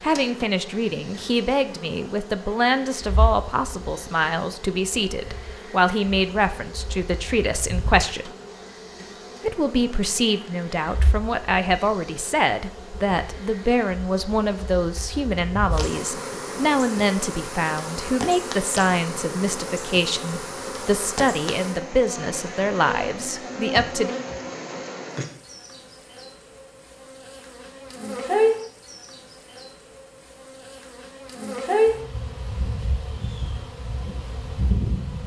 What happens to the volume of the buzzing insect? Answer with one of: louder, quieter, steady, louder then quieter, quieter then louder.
louder.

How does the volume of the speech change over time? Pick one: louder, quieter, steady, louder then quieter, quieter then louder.
steady.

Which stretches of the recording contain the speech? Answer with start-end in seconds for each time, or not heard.
0.0-8.3, 9.4-24.1.